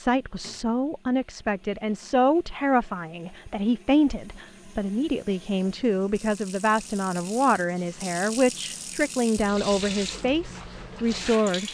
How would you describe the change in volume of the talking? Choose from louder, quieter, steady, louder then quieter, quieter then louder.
steady.